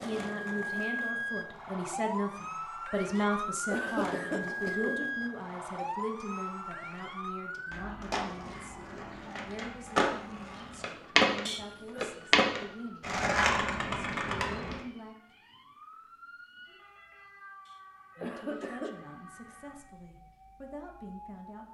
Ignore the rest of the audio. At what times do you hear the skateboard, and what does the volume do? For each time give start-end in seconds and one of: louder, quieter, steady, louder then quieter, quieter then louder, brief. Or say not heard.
0.0-14.8 louder.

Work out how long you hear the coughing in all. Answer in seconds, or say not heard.
4 s.